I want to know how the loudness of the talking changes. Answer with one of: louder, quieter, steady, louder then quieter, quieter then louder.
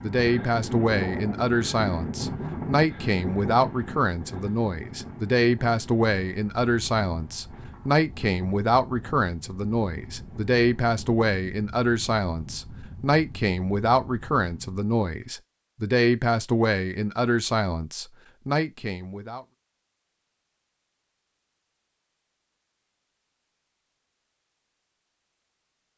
steady.